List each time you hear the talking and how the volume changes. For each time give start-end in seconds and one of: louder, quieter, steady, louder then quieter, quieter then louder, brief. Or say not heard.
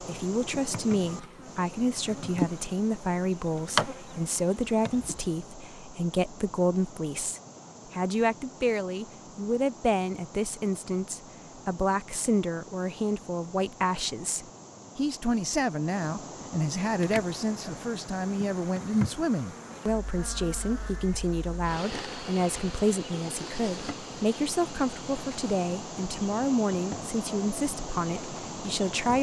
0.0-29.1 steady.